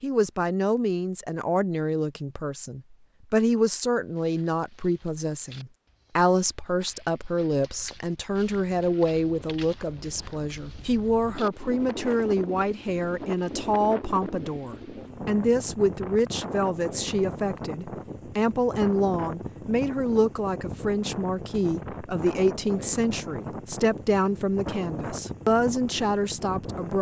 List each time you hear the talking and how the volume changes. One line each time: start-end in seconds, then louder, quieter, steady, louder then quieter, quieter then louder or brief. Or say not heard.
0.0-26.9 steady.